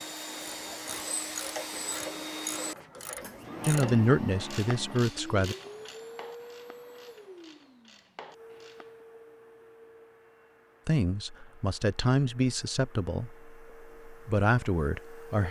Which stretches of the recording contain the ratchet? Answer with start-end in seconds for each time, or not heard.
0.3-9.1.